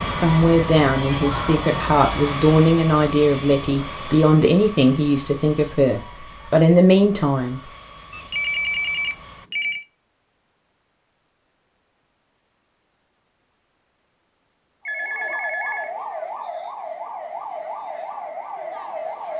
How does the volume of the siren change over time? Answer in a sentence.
The volume of the siren stays about the same.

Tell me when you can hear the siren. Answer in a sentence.
The siren can be heard from 14.8 to 19.3 s.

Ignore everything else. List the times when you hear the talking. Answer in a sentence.
The talking can be heard from 0.1 to 7.6 s.